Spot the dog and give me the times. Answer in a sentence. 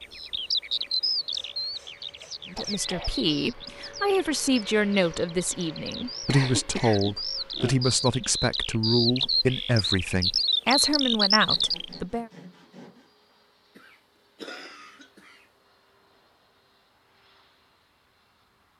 The dog can't be heard in this clip.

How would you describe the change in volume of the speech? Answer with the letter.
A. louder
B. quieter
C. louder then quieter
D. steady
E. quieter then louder
D.